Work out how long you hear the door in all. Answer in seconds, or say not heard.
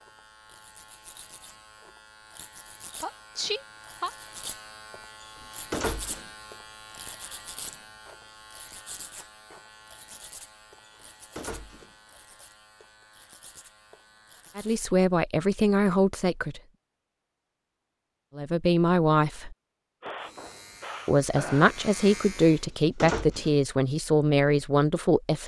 3 s.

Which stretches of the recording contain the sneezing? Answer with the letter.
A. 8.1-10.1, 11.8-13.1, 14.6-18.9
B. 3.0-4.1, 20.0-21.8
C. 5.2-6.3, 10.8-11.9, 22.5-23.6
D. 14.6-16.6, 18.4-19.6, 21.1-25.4
B.